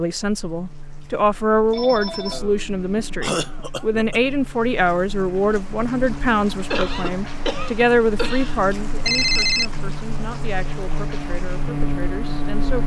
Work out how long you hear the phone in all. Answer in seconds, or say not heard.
2 s.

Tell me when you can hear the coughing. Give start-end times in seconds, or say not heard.
2.3-4.3, 6.7-8.6.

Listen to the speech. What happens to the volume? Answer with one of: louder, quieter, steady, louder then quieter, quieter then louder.
quieter.